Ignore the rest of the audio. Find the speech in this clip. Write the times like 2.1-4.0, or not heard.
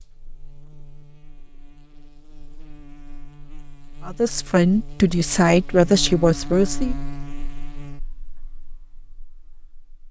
4.0-7.0.